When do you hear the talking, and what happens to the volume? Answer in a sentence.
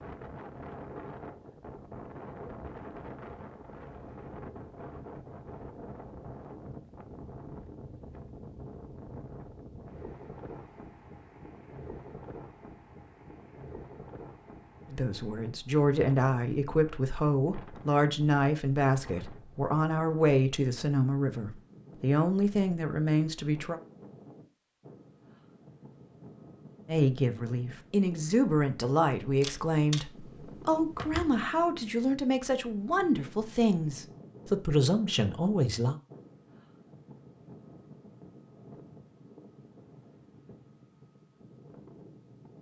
You can hear the talking from 14.8 to 23.8 s, at a steady volume; and from 26.9 to 36.0 s, at a steady volume.